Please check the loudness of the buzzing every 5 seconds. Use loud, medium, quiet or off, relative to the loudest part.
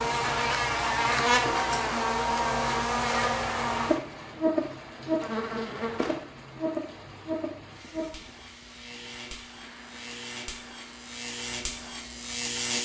loud, medium, medium.